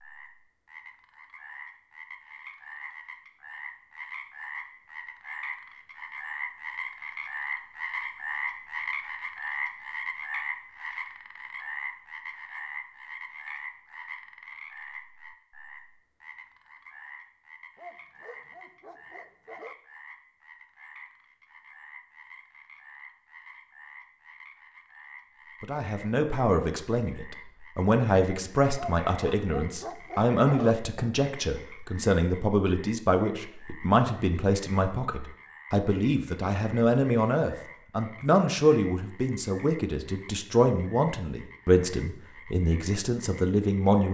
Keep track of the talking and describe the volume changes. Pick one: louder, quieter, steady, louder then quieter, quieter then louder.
steady.